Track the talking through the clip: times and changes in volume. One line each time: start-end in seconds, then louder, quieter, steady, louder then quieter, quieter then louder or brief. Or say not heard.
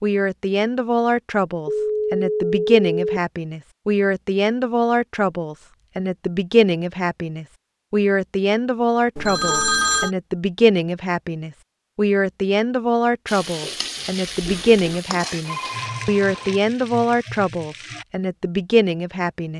0.0-19.5 steady.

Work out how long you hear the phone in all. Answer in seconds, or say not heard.
4 s.